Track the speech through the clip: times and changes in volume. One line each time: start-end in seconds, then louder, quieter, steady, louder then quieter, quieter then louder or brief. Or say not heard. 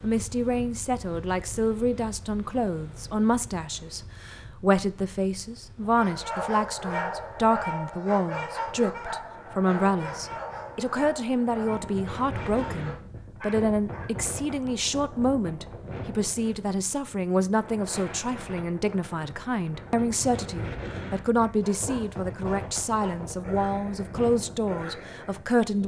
0.0-25.8 steady.